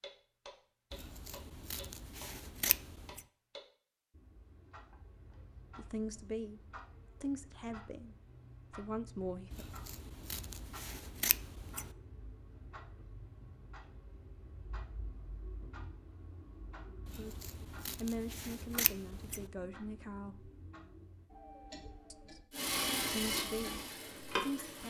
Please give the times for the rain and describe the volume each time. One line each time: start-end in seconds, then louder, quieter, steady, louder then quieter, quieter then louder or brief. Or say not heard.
not heard.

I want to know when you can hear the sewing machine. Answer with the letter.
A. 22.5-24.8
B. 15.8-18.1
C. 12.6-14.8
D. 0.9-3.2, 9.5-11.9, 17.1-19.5
A.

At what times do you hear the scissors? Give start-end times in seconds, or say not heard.
0.9-3.2, 9.5-11.9, 17.1-19.5.